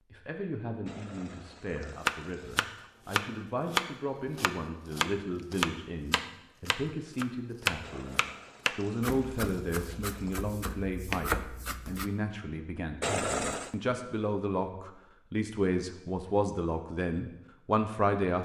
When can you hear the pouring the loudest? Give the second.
13 s.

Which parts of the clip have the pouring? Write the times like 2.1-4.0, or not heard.
0.8-2.9, 7.8-10.5, 13.0-13.8.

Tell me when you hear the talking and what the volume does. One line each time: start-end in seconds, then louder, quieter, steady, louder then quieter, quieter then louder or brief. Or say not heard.
0.1-18.3 louder.